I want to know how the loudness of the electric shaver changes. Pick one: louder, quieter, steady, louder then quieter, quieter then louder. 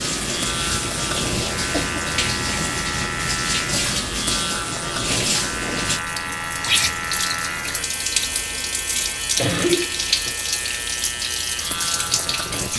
steady.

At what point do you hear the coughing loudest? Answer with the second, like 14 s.
10 s.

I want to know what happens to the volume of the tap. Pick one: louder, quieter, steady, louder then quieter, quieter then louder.
steady.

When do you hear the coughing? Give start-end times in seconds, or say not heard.
1.3-2.0, 9.3-10.3.